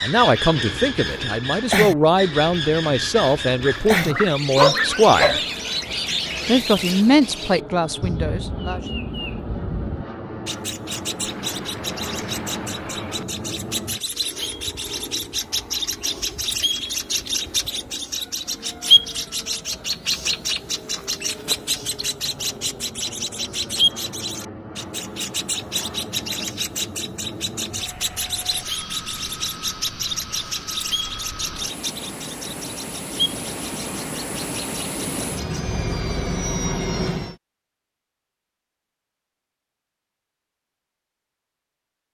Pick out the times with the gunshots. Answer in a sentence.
The gunshots can be heard from 11.2 to 13.2 s.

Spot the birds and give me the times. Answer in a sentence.
You can hear the birds from 0.0 to 35.6 s.